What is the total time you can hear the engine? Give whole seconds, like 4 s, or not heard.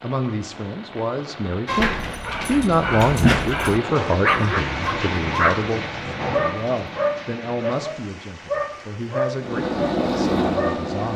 2 s.